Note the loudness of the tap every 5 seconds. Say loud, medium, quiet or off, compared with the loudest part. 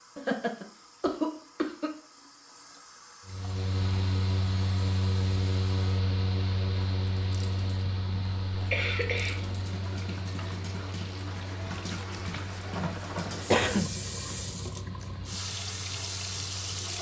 quiet, medium, loud, loud.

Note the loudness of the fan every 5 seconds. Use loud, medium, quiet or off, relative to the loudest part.
loud, loud, medium, quiet.